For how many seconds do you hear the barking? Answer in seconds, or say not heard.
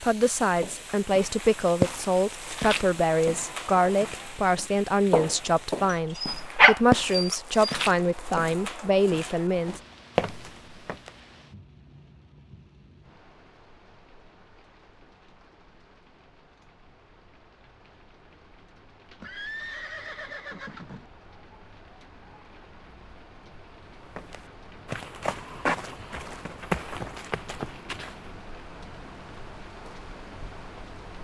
2 s.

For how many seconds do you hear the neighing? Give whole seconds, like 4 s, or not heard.
2 s.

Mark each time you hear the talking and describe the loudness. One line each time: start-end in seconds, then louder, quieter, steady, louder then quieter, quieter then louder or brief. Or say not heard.
0.0-9.8 steady.